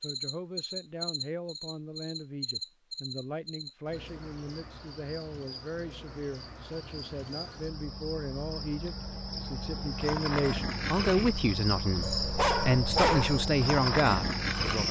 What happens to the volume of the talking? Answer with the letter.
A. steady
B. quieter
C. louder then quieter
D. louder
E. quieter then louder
D.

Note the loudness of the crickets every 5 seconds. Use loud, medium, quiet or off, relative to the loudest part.
medium, medium, loud.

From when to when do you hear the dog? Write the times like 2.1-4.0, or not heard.
12.0-13.5.